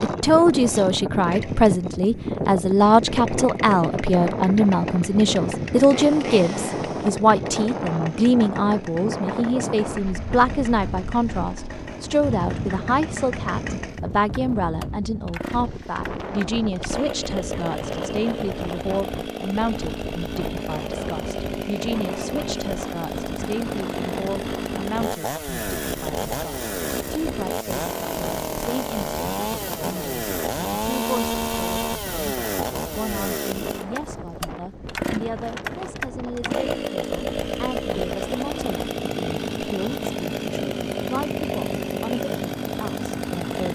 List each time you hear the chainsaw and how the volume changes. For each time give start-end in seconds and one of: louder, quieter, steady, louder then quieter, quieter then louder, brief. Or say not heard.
0.0-43.7 louder.